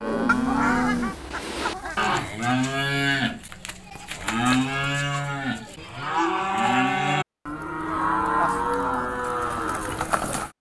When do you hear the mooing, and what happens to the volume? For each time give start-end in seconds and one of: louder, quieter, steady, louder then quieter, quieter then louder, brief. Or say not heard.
0.0-10.5 steady.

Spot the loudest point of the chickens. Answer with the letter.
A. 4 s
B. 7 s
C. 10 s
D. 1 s
D.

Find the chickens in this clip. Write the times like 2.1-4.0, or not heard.
0.2-2.1.